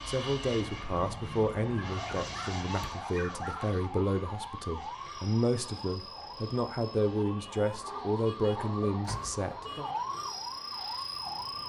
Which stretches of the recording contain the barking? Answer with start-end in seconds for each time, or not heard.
1.8-3.8, 7.2-8.8.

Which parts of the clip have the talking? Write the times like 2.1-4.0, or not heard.
0.1-9.9.